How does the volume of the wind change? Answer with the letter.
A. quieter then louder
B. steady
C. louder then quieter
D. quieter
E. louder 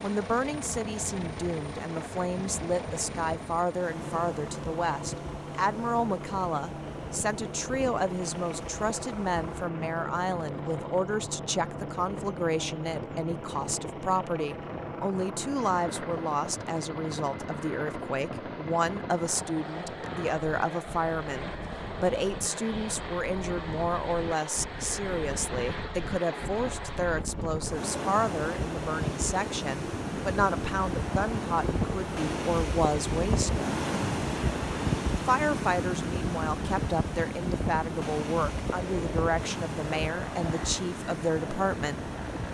E.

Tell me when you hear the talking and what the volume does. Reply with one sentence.
The talking can be heard from 0.0 to 33.6 s, at a steady volume; and from 35.1 to 42.5 s, at a steady volume.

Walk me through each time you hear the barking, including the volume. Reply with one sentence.
You can't hear the barking here.